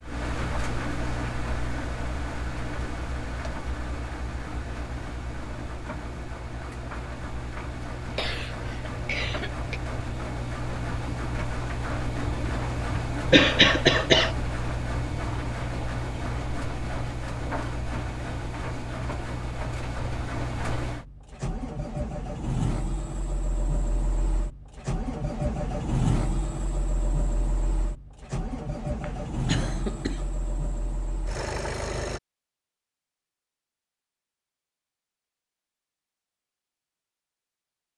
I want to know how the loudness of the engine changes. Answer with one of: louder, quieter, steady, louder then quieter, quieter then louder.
steady.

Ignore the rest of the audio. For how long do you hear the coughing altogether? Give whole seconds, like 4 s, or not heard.
4 s.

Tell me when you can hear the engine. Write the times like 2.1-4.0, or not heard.
0.0-32.2.